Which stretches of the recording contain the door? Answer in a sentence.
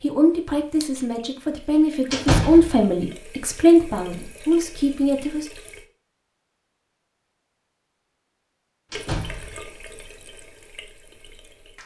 You can hear the door from 2.1 to 2.9 s and from 8.9 to 9.7 s.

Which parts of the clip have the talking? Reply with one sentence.
You can hear the talking from 0.0 to 5.5 s.